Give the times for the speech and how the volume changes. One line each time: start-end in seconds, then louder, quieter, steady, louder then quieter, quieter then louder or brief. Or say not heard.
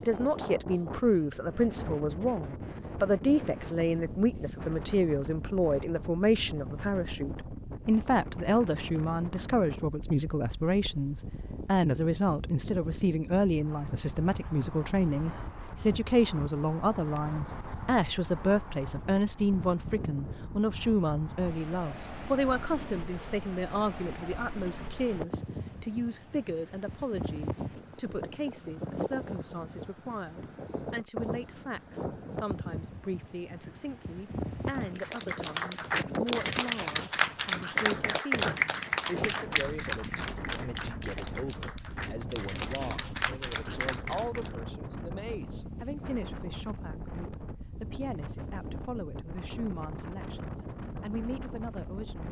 0.0-52.2 quieter.